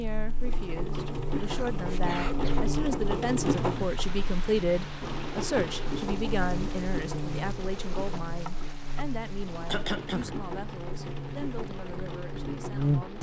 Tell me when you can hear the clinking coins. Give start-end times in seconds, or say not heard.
not heard.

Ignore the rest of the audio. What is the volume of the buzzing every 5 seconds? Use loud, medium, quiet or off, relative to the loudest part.
loud, medium, loud.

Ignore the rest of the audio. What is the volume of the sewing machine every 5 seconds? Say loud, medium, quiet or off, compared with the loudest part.
loud, loud, medium.